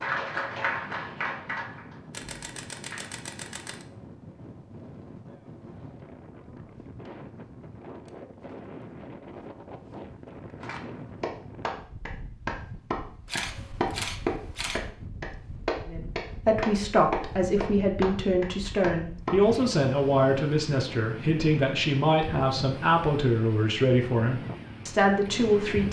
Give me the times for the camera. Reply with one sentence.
The camera can be heard from 2.1 to 3.9 s and from 13.2 to 14.8 s.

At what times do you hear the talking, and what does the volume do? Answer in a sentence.
You can hear the talking from 15.8 to 25.8 s, at a steady volume.